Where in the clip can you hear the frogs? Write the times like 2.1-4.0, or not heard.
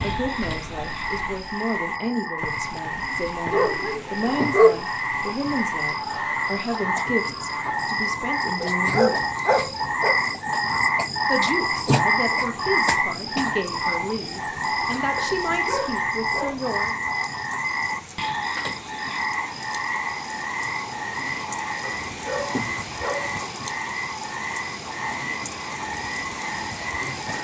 0.0-27.3.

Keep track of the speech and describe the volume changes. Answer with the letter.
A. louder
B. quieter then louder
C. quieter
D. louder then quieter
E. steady
E.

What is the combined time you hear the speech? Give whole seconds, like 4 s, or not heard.
15 s.